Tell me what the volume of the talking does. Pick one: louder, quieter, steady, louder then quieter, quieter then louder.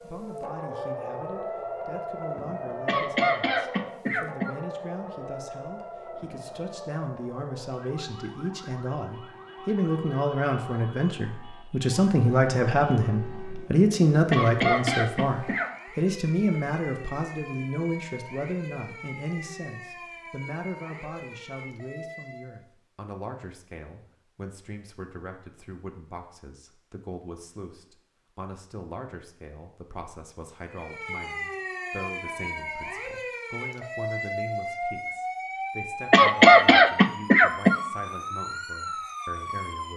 louder then quieter.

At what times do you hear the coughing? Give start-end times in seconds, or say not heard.
2.9-4.5, 14.3-15.7, 36.1-37.8.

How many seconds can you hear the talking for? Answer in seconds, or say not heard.
40 s.